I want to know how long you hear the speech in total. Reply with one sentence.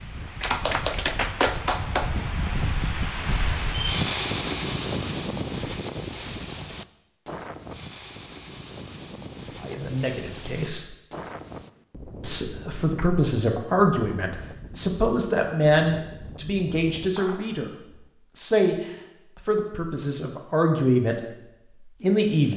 The speech can be heard for 10 seconds in total.